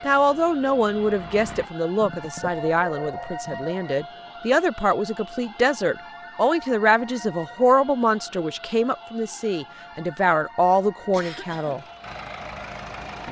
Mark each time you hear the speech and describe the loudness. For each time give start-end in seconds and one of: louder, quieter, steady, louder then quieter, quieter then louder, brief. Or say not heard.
0.0-11.8 steady.